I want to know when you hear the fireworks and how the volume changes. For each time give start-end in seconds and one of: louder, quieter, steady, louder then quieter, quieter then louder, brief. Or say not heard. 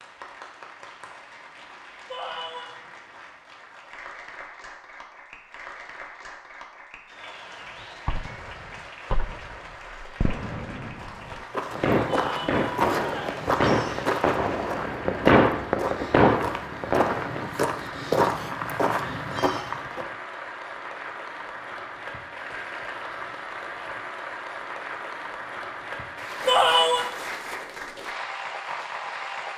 7.8-17.6 louder.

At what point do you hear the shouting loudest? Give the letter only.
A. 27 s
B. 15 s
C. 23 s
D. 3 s
A.